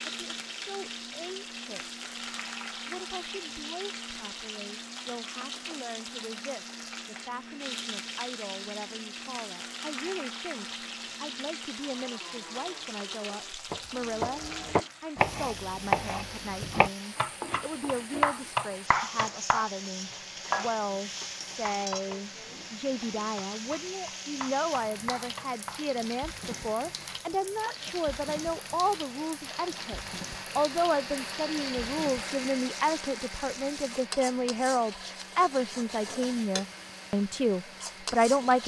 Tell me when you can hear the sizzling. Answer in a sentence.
The sizzling can be heard from 0.0 to 38.6 s.